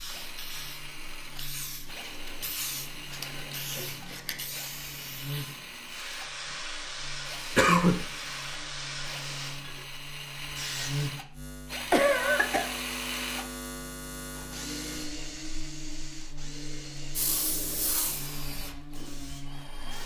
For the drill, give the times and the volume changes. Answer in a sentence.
The drill can be heard from 0.0 to 20.0 s, getting louder then quieter.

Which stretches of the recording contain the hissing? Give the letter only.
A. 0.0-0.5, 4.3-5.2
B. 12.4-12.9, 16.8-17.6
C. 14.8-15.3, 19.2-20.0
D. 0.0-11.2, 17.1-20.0
D.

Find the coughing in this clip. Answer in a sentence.
The coughing can be heard from 7.5 to 8.1 s and from 11.9 to 12.7 s.